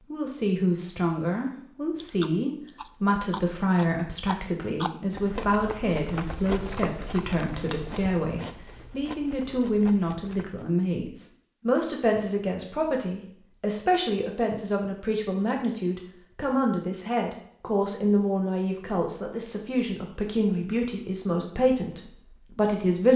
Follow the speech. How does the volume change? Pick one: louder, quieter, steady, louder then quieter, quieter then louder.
steady.